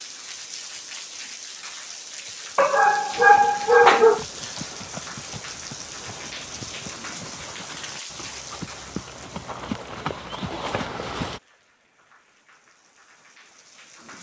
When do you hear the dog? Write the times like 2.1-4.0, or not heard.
2.5-4.2.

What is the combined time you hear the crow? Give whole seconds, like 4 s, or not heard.
not heard.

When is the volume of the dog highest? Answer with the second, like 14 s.
4 s.